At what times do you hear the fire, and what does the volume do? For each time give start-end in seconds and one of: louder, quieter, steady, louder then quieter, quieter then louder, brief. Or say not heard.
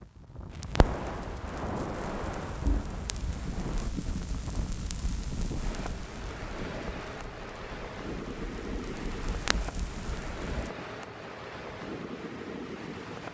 0.5-10.7 quieter then louder.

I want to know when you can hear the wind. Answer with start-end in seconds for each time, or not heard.
0.0-13.2.